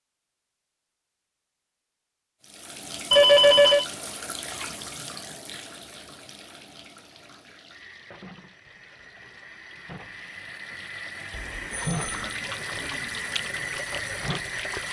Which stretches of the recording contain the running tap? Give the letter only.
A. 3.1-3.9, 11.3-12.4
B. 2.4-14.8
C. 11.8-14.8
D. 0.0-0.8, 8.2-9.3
B.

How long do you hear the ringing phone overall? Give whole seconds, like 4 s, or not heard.
2 s.